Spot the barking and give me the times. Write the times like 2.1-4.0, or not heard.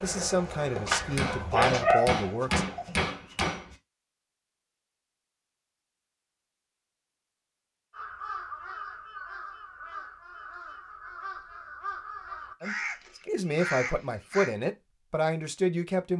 0.8-3.1.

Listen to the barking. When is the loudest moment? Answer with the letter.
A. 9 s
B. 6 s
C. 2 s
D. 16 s
C.